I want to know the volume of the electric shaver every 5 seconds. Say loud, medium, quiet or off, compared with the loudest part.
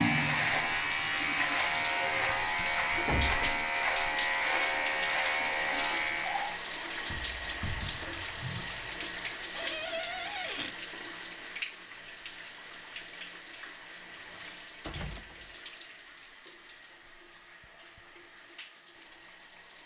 loud, loud, off, off.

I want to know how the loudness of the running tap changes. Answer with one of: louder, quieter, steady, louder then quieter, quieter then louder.
quieter.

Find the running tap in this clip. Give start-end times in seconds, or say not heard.
0.0-19.8.